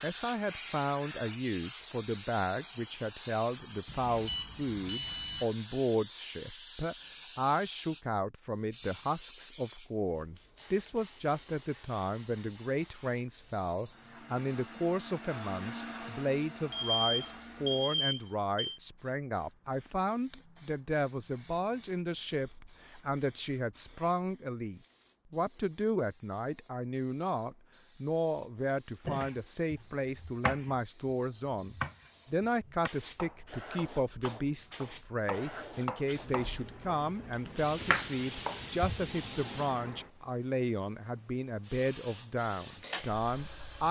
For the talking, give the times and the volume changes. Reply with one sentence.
You can hear the talking from 0.0 to 43.8 s, at a steady volume.